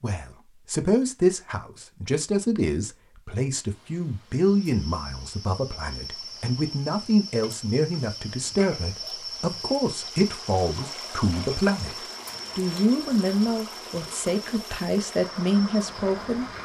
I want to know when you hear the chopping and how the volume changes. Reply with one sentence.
You can't hear the chopping here.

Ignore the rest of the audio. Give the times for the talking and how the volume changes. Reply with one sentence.
The talking can be heard from 0.0 to 16.5 s, at a steady volume.